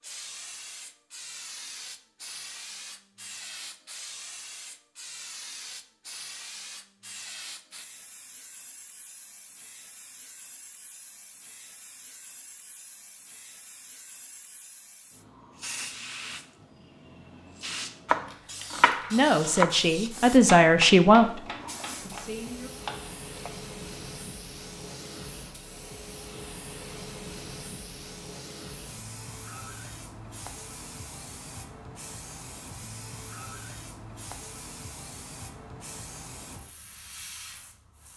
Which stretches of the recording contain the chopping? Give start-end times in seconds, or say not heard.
18.1-23.5.